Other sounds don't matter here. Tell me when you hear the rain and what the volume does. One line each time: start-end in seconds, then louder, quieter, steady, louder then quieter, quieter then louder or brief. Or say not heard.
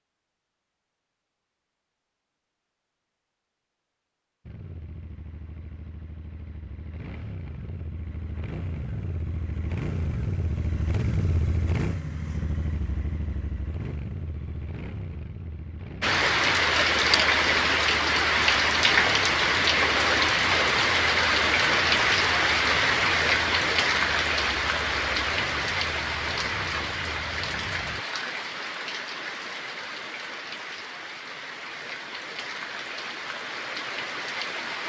16.0-34.8 quieter.